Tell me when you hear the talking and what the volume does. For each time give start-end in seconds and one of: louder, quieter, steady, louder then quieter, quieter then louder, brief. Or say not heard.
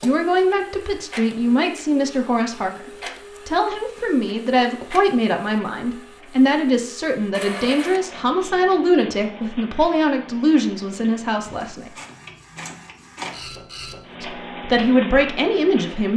0.0-11.9 steady
14.2-16.1 brief.